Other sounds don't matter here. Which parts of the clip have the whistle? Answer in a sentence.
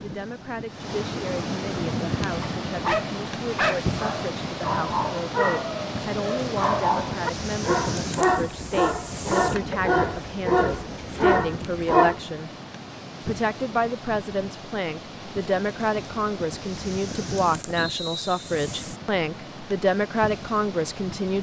The whistle can be heard from 17.8 to 18.6 s.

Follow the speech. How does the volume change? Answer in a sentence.
The volume of the speech goes up.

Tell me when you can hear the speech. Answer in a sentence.
The speech can be heard from 0.0 to 12.5 s and from 13.2 to 21.3 s.